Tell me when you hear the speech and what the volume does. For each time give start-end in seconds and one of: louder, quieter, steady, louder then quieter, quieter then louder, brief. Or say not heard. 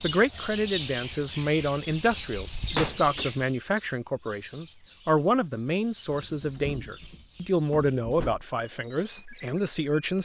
0.0-10.2 steady.